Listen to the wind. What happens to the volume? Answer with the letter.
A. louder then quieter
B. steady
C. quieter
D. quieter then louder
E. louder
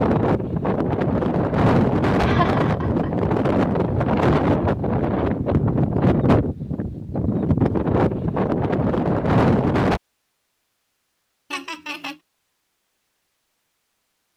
B.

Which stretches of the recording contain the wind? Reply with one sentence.
The wind can be heard from 0.0 to 10.0 s.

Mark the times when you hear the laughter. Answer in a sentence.
You can hear the laughter from 2.2 to 3.3 s and from 11.5 to 12.2 s.